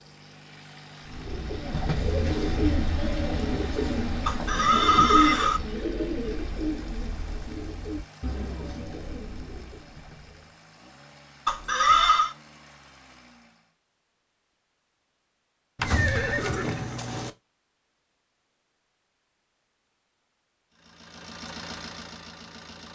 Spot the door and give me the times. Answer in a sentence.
You can't hear the door here.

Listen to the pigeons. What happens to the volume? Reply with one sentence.
The loudness of the pigeons goes down.